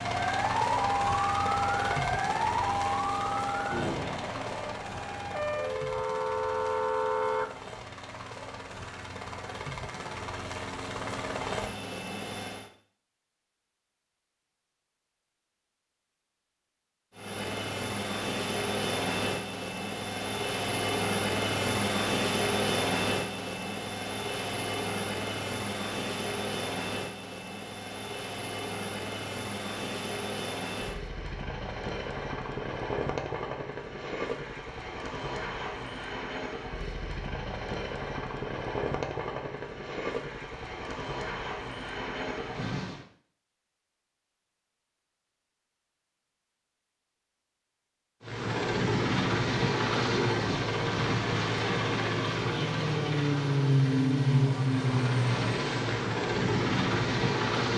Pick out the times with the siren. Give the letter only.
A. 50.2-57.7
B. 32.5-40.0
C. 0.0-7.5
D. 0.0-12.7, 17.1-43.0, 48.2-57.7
C.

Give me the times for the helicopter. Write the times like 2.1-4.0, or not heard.
0.0-12.7, 17.1-43.0, 48.2-57.7.